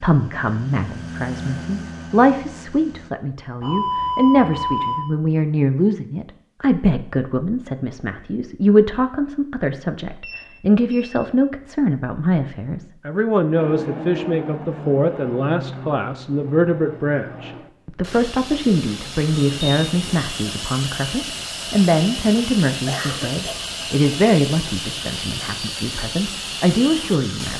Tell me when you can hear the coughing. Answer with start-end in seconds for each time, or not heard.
22.9-23.7.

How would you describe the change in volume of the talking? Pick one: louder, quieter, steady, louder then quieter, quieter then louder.
steady.